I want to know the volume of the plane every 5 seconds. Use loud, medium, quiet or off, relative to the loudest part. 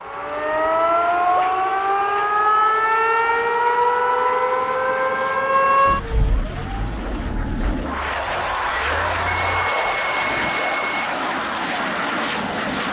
quiet, loud, loud.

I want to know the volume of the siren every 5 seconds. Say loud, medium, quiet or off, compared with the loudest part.
loud, medium, quiet.